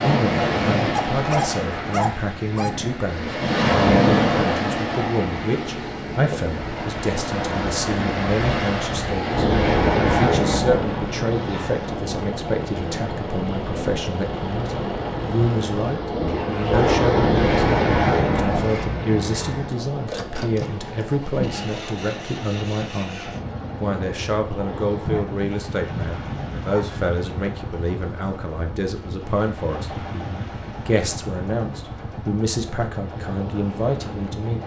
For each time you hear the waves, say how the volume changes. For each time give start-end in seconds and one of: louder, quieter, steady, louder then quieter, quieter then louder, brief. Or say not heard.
0.0-34.6 quieter.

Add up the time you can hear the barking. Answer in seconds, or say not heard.
4 s.